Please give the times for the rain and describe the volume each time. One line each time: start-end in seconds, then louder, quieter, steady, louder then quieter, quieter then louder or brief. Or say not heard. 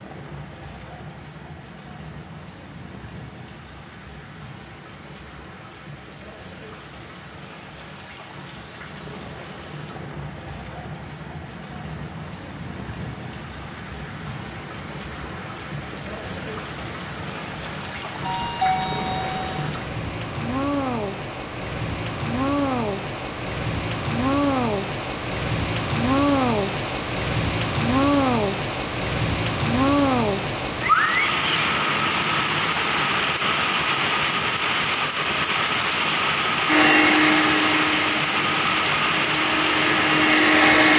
0.0-40.9 louder.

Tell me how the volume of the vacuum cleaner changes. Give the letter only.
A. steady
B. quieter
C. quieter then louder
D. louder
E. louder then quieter
C.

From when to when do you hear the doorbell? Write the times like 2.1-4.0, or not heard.
18.2-19.5.